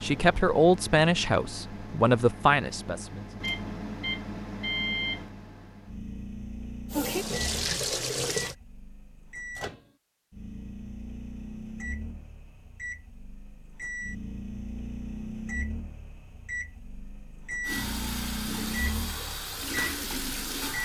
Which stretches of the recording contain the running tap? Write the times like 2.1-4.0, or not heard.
6.9-8.6, 17.6-20.8.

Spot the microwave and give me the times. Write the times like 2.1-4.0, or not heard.
0.0-20.8.